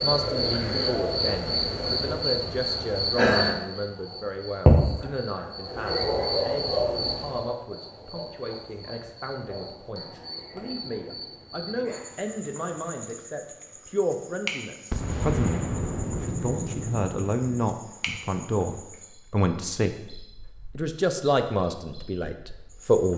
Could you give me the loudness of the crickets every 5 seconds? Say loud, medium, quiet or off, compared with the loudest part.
loud, medium, quiet, quiet, quiet.